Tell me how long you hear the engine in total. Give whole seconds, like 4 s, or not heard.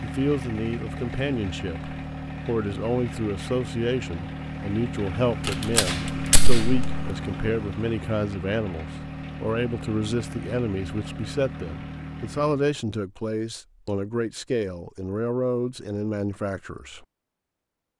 13 s.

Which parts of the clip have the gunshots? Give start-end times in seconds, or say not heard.
5.5-7.0.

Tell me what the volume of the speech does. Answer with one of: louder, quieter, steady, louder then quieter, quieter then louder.
steady.